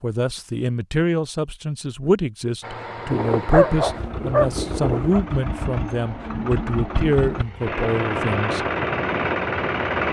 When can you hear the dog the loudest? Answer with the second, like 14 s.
4 s.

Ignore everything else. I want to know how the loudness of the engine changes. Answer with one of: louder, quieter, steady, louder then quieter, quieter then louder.
louder.